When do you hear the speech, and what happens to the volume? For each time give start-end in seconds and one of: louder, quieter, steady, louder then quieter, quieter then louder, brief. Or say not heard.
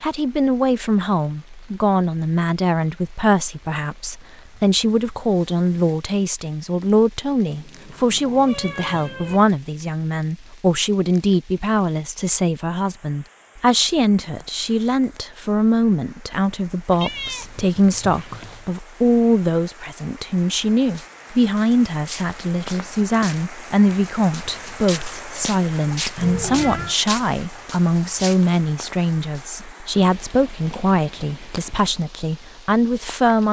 0.0-33.4 steady.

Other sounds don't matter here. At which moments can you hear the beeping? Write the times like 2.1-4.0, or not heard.
not heard.